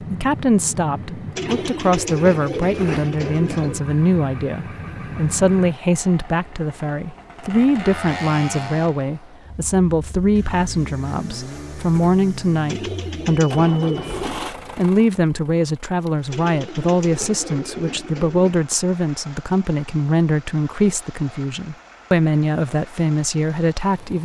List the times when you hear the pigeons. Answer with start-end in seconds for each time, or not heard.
1.4-3.8, 12.7-14.5, 16.3-18.6.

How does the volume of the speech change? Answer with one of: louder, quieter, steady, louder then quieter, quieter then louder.
steady.